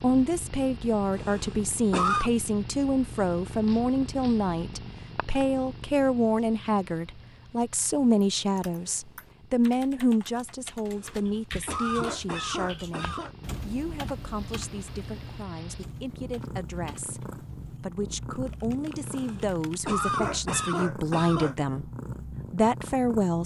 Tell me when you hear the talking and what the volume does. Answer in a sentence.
You can hear the talking from 0.0 to 21.9 s, getting quieter then louder; and briefly from 22.5 to 23.4 s.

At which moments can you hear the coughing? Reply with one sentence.
You can hear the coughing from 1.1 to 2.3 s, from 10.9 to 13.3 s and from 19.1 to 21.6 s.